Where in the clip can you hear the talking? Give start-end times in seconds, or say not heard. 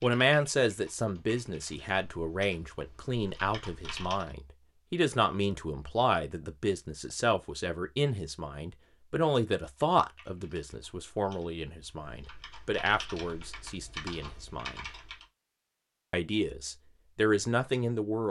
0.0-14.9, 16.1-18.2.